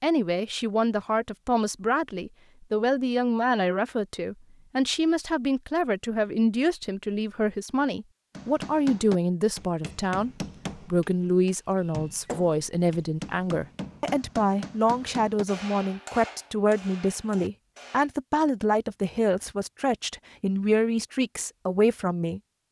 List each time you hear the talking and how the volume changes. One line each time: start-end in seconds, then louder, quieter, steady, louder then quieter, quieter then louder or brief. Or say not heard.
0.0-22.4 steady.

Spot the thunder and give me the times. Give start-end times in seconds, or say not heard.
not heard.